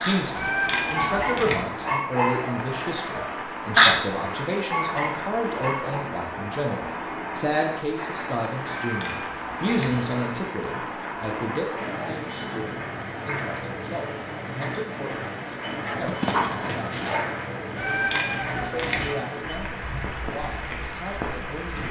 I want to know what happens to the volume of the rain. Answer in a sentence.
The loudness of the rain stays about the same.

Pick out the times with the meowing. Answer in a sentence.
You can hear the meowing from 0.3 to 1.6 s, from 8.8 to 10.1 s and from 17.8 to 19.1 s.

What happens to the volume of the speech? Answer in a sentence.
The loudness of the speech goes down.